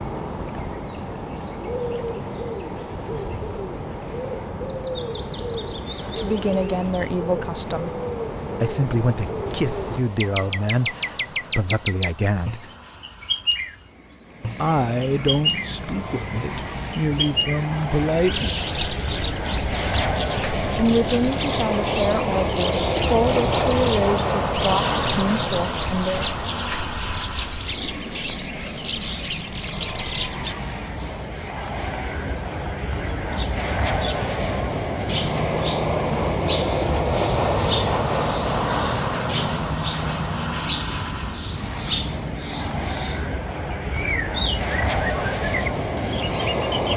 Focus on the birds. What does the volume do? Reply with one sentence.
The loudness of the birds stays about the same.